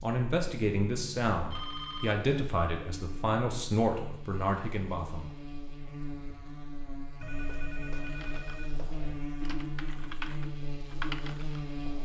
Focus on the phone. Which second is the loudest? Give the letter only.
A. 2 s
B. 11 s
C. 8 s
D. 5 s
A.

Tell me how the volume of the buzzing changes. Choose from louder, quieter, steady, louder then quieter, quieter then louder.
louder.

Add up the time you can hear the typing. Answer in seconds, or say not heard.
4 s.